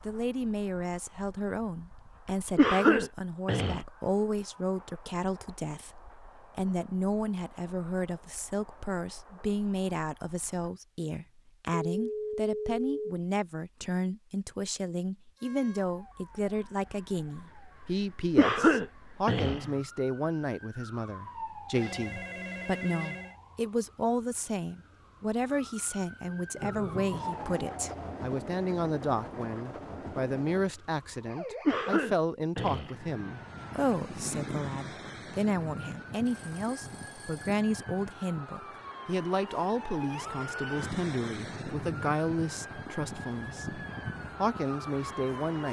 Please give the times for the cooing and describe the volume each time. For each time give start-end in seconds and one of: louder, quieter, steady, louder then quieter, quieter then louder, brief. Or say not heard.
not heard.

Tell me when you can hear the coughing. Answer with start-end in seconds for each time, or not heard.
2.5-3.8, 18.4-19.8, 31.6-33.0.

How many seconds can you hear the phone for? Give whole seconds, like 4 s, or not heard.
4 s.